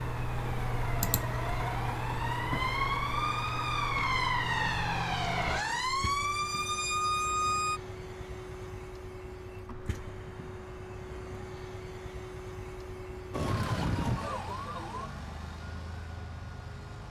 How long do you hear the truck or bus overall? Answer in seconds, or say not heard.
17 s.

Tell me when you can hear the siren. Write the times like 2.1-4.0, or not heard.
0.0-7.8, 13.3-15.1.